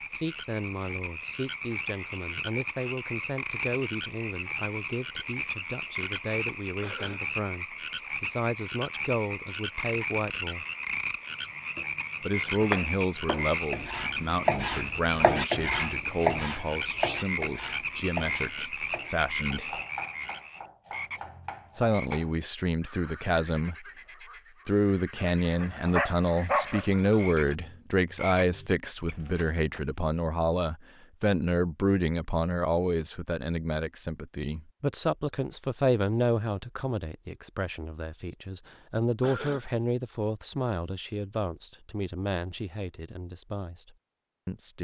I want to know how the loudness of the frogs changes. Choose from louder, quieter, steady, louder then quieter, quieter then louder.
quieter.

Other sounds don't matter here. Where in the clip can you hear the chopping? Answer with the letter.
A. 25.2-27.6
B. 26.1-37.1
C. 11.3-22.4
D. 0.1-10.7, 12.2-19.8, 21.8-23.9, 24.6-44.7
C.